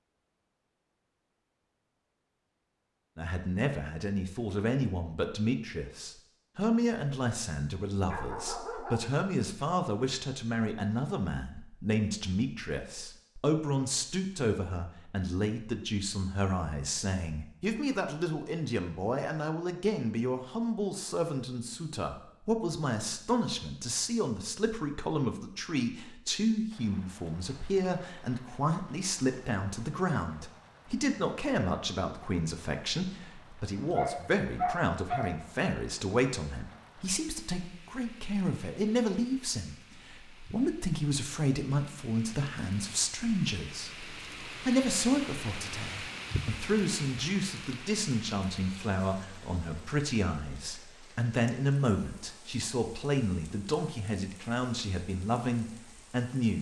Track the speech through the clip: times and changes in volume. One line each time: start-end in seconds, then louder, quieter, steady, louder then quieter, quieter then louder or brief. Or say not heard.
3.1-56.5 steady.